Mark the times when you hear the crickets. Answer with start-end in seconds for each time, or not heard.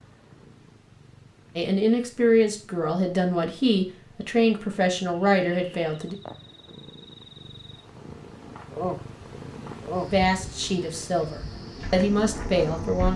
5.1-13.1.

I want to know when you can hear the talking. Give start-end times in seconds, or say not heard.
1.6-6.2, 10.1-13.1.